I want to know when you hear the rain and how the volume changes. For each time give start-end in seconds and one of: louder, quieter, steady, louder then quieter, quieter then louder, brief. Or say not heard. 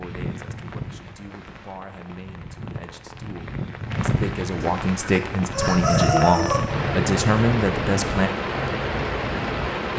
0.0-9.9 louder.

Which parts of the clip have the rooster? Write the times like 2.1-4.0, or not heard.
4.6-6.6.